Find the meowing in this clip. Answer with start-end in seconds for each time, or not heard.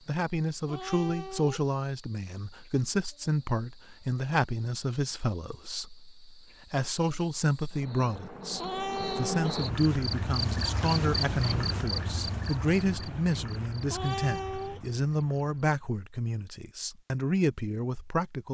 0.7-1.7, 8.6-9.6, 13.8-14.8.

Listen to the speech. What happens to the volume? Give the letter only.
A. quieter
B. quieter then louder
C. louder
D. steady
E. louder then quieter
D.